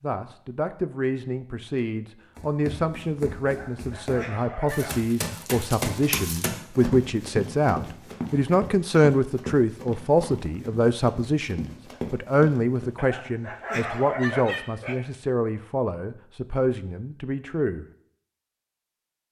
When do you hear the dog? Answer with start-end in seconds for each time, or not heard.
3.5-5.0, 12.9-15.0.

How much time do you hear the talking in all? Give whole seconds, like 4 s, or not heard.
18 s.